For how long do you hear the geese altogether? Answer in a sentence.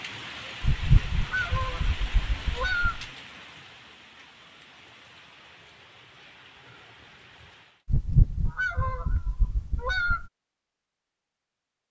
You can hear the geese for 5 seconds altogether.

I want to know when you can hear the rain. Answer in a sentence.
The rain can be heard from 0.0 to 7.8 s.